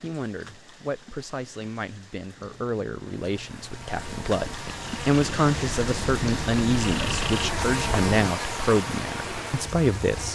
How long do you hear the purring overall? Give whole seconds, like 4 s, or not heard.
6 s.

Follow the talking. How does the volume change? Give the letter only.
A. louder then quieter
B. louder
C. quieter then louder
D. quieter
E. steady
B.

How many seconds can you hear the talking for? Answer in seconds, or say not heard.
10 s.